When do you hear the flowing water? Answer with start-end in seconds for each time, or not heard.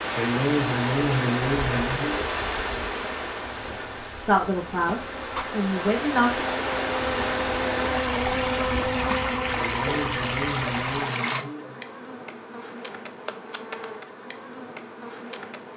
0.0-11.4.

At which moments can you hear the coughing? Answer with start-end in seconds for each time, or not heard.
0.1-2.3, 9.6-11.8.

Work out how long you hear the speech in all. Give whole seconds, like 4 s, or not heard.
3 s.